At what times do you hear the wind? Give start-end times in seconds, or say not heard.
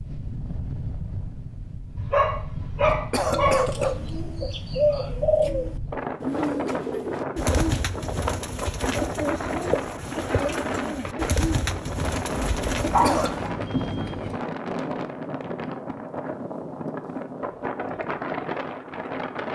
0.0-19.4.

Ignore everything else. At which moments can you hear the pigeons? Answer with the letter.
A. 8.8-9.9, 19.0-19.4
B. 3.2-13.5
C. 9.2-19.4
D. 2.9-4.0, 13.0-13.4
B.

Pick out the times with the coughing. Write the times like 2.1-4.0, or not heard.
2.9-4.0, 13.0-13.4.